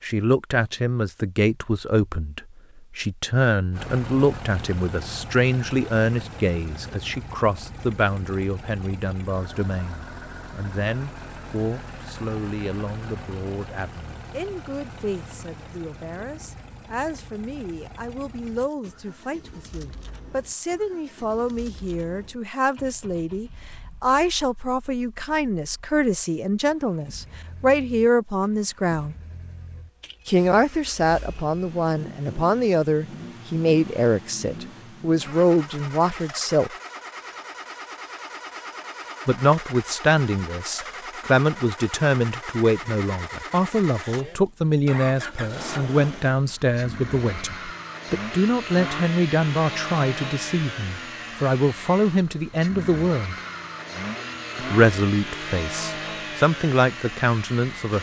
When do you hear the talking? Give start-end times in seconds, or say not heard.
0.0-29.1, 30.2-36.7, 39.2-53.4, 54.5-57.9.